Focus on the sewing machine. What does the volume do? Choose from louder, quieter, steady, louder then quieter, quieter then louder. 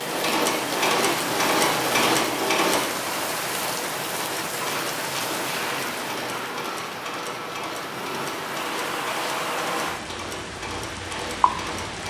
quieter.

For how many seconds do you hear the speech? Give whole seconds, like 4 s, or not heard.
not heard.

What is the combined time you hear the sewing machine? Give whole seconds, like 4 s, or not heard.
12 s.